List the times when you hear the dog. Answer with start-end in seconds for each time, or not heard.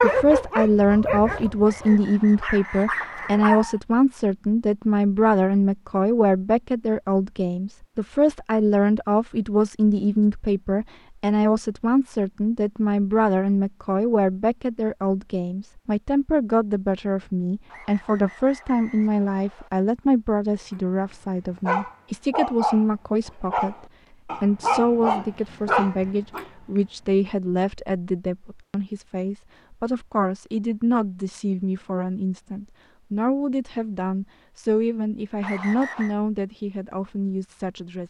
0.0-3.8, 20.8-26.8.